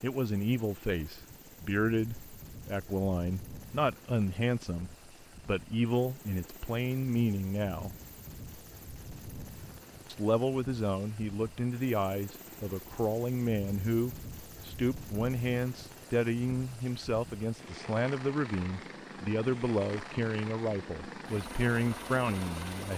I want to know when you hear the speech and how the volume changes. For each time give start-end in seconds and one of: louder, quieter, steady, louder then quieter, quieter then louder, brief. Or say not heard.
0.0-8.0 steady
10.1-22.9 steady.